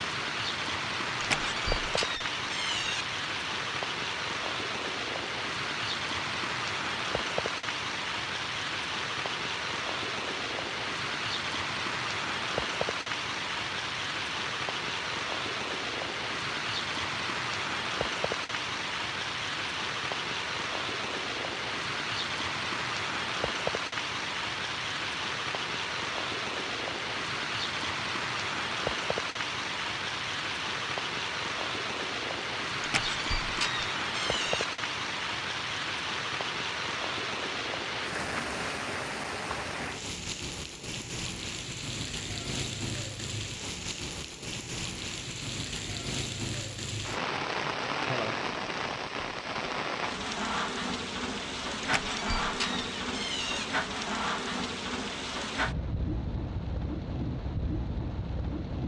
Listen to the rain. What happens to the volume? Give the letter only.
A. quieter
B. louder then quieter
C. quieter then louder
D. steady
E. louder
D.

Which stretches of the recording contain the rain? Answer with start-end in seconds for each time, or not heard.
0.0-58.8.